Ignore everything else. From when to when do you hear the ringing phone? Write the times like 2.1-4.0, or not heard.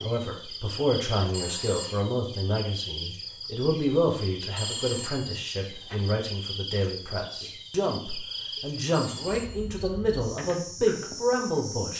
1.3-1.9, 4.5-6.0, 8.9-9.7.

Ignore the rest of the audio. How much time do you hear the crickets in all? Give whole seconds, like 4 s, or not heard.
12 s.